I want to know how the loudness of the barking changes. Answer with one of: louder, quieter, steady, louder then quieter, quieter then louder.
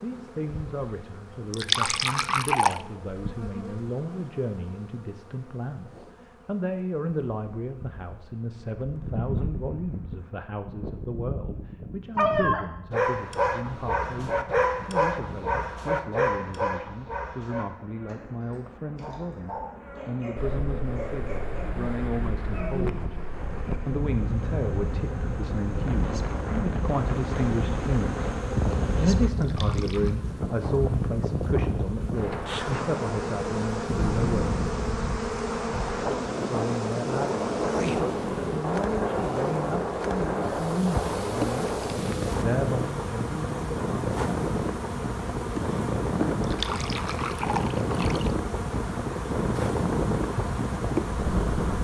quieter.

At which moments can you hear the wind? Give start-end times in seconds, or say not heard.
20.4-51.7.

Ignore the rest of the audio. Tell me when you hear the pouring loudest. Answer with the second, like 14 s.
2 s.